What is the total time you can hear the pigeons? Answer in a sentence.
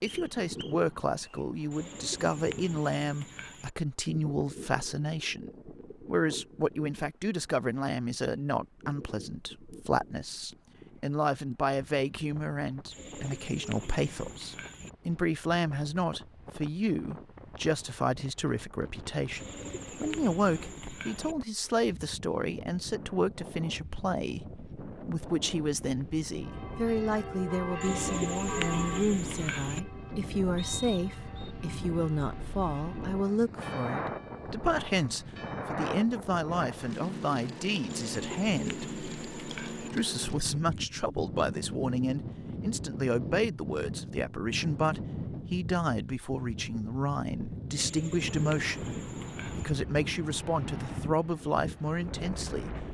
You can hear the pigeons for 12 seconds altogether.